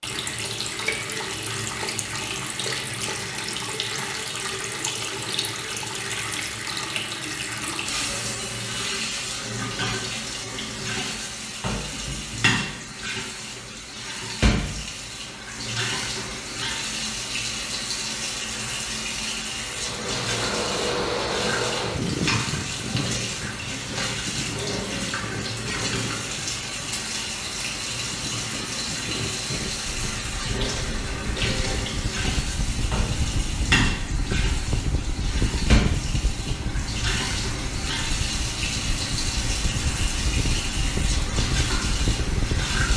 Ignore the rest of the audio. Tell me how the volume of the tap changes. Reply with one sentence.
The volume of the tap stays about the same.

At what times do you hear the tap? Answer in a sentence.
You can hear the tap from 0.0 to 42.9 s.